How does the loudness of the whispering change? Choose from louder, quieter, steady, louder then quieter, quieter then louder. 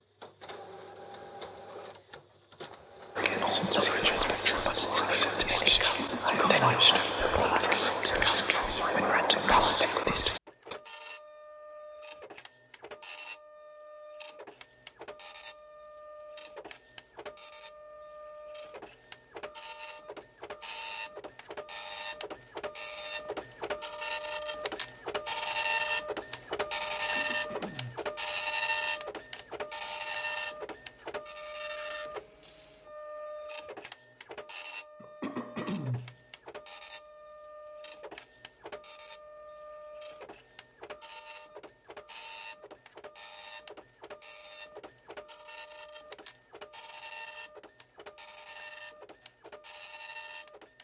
steady.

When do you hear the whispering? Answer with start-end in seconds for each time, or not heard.
3.1-10.8.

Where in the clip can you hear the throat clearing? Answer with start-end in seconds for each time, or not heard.
5.8-6.9, 26.9-28.1, 35.0-36.1.